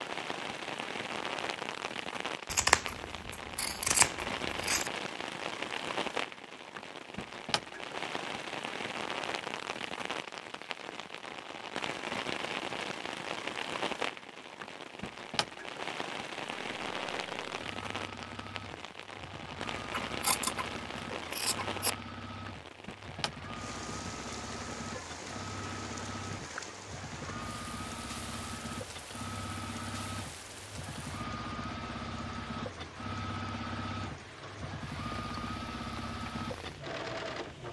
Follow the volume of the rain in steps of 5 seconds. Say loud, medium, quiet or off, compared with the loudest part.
loud, loud, loud, loud, loud, medium, medium, medium.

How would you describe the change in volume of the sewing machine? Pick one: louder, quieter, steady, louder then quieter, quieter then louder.
louder.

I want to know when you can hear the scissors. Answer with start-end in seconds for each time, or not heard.
2.5-4.9, 20.1-21.9.